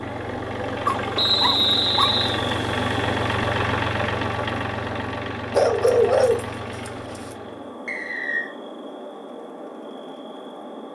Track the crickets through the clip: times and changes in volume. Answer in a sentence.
The crickets can be heard from 0.0 to 10.9 s, getting quieter.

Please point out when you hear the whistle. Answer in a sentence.
You can hear the whistle from 1.1 to 2.4 s and from 7.8 to 8.5 s.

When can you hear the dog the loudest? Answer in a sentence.
The loudest moment of the dog is at 6 seconds.